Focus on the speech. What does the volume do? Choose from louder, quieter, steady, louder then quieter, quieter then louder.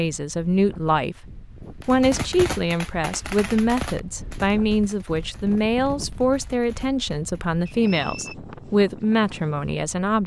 steady.